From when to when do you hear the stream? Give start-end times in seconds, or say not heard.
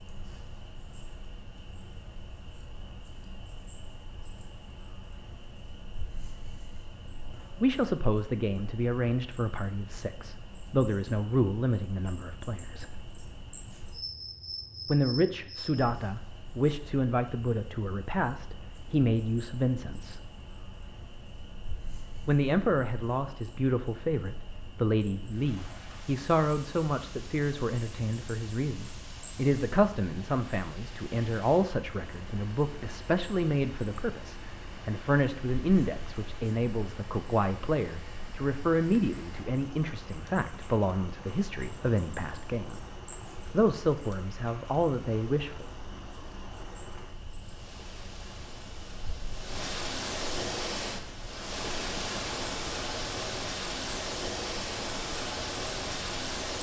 25.2-56.5.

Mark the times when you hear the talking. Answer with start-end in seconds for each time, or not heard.
7.6-13.0, 14.8-20.2, 22.2-42.8, 43.5-45.6.